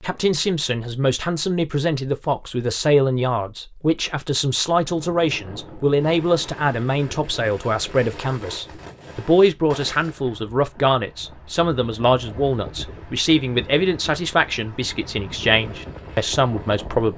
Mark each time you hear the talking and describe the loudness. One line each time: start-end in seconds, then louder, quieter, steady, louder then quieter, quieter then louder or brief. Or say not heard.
0.0-17.1 steady.